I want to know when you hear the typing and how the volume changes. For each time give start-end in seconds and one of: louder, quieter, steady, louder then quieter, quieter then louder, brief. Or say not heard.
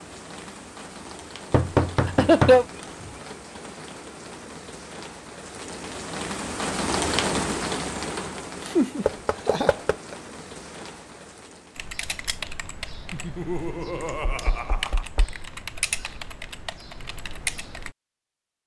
11.8-17.9 quieter then louder.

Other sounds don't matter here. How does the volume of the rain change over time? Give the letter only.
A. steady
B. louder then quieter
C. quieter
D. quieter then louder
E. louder
B.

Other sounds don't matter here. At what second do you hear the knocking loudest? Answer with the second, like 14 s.
2 s.